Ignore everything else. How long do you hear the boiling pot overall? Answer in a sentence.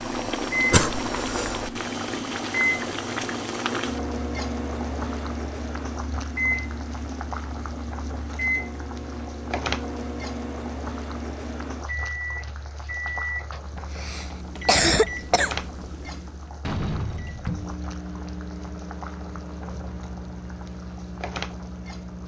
The boiling pot can be heard for 22 seconds in total.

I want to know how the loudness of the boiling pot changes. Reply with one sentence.
The volume of the boiling pot goes down.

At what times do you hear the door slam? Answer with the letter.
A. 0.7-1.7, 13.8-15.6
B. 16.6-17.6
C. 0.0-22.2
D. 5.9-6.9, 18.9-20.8
B.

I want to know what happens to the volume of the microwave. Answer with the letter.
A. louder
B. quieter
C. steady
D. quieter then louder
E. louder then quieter
B.